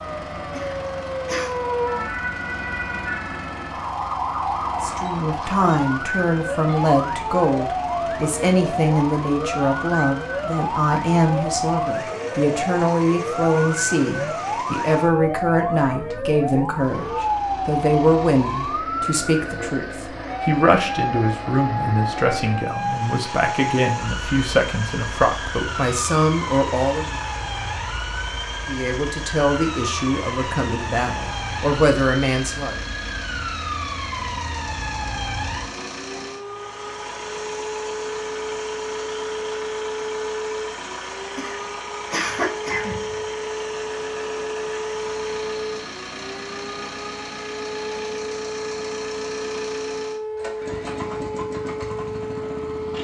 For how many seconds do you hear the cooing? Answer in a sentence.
The cooing can't be heard in this clip.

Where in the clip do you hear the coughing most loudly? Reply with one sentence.
The loudest moment of the coughing is at 42 seconds.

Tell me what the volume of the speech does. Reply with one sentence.
The loudness of the speech stays about the same.